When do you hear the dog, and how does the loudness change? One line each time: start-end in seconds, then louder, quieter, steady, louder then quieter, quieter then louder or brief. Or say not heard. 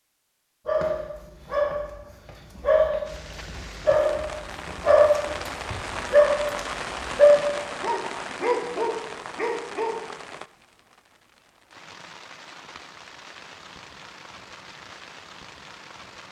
0.7-9.9 louder then quieter.